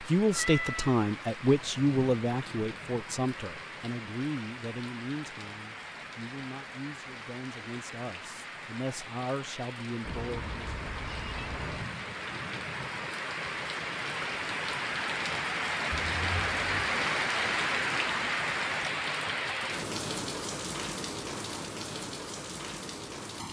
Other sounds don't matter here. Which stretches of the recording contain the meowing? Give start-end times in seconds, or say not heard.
0.3-1.0, 10.1-11.9, 15.9-16.9.